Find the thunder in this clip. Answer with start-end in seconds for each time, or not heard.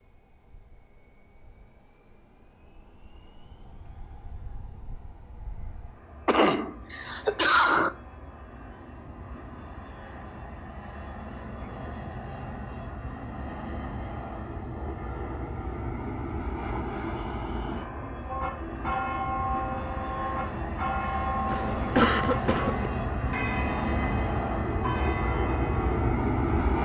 not heard.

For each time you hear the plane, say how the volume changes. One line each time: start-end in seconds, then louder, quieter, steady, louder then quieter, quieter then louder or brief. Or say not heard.
0.0-26.7 louder.